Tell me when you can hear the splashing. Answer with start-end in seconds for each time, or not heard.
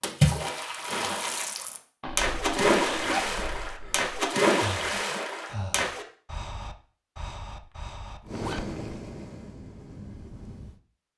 0.0-6.0.